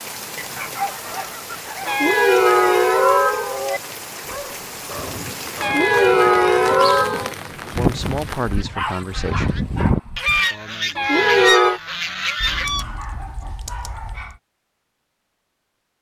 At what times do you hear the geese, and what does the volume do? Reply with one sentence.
You can hear the geese from 7.7 to 12.8 s, getting louder then quieter.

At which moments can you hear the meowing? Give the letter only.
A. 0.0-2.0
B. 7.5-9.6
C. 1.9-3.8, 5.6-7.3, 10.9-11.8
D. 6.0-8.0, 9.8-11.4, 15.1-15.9
C.